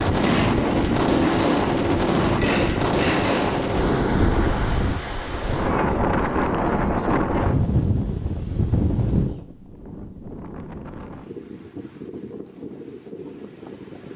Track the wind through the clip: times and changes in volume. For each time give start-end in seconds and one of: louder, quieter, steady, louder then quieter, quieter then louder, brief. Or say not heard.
0.0-14.1 quieter.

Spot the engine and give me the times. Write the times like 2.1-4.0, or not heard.
0.0-3.5.